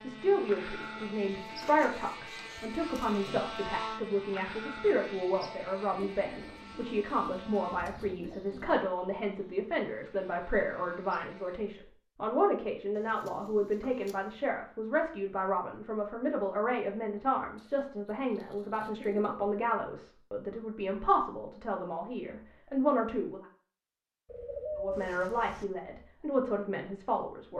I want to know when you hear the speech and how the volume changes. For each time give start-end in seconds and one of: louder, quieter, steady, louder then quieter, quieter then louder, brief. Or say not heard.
0.0-23.4 steady
24.8-27.5 brief.